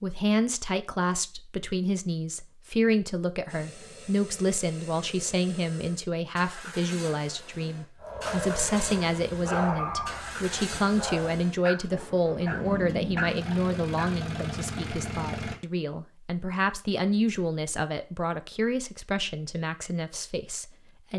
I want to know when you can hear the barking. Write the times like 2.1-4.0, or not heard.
8.0-14.1.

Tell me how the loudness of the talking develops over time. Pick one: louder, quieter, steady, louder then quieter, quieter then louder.
steady.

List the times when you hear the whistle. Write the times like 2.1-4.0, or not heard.
not heard.